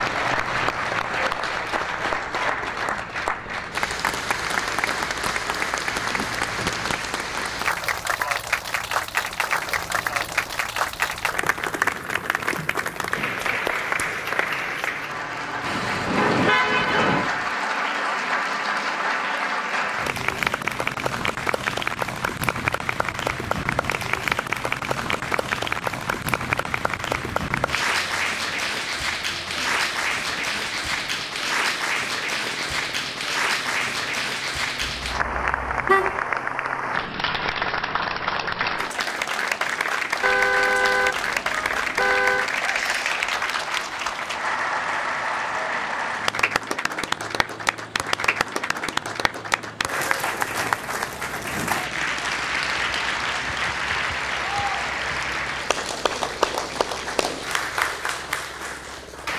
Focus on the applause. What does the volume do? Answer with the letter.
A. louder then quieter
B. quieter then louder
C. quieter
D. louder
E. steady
E.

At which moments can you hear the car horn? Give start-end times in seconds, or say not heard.
15.6-17.3, 34.8-36.2, 40.2-42.5.